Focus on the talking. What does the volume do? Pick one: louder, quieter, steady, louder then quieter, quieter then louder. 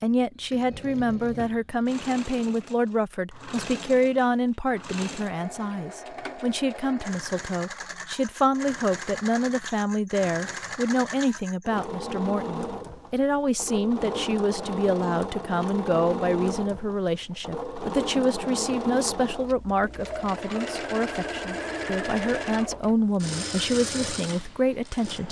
steady.